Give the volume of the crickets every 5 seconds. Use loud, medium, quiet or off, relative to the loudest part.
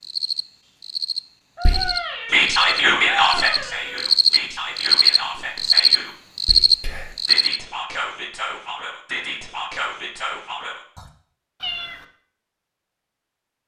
medium, loud, off.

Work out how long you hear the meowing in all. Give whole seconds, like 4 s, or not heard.
3 s.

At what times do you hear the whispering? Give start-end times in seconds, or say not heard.
1.6-11.1.